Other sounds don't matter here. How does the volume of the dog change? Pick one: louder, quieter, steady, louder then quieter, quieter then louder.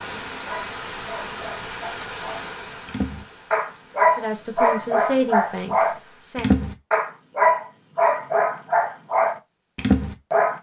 louder.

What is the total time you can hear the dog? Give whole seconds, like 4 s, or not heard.
10 s.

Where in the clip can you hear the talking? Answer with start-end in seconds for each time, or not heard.
4.2-6.5.